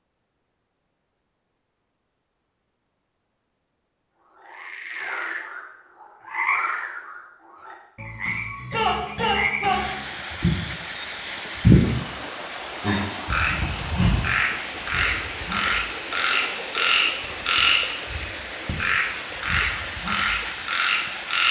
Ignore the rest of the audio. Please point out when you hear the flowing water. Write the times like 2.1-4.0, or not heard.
9.7-21.4.